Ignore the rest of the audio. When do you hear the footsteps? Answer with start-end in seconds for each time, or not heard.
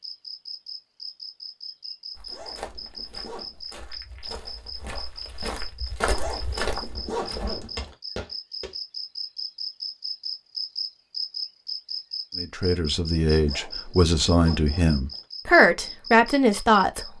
2.1-8.8.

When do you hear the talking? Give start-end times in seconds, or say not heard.
12.3-17.1.